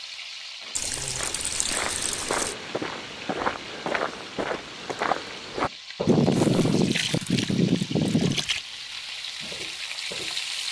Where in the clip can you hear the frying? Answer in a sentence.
You can hear the frying from 0.0 to 10.6 s.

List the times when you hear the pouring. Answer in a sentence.
You can hear the pouring from 0.8 to 2.5 s and from 6.0 to 8.6 s.